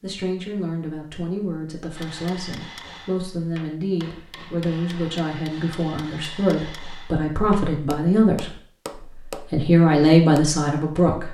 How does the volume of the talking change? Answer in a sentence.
The volume of the talking goes up.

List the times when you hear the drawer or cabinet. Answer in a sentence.
The drawer or cabinet can't be heard in this clip.